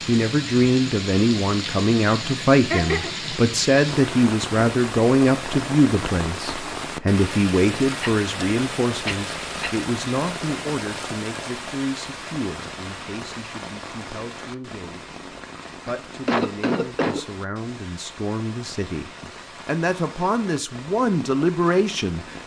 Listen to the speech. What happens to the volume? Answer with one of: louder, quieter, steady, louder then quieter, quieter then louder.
quieter then louder.